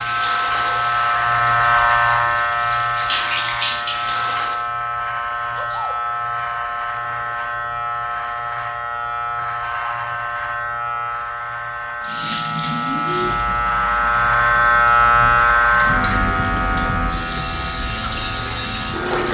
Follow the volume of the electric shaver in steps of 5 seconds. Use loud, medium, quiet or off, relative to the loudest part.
loud, medium, loud, loud.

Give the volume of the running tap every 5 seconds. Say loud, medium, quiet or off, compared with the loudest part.
loud, off, loud, loud.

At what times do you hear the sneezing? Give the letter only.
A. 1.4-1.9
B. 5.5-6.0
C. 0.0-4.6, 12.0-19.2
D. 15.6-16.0
B.